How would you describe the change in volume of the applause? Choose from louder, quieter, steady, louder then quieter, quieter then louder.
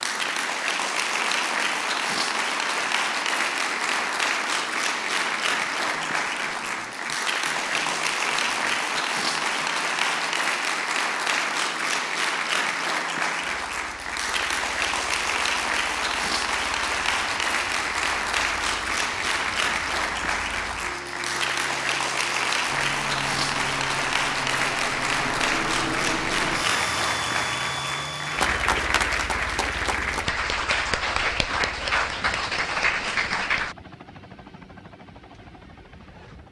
steady.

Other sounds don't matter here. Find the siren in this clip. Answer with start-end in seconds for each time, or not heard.
not heard.